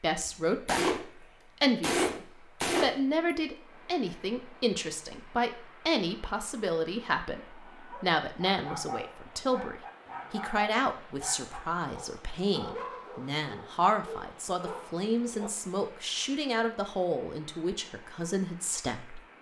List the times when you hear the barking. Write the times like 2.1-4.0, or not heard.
7.7-15.5.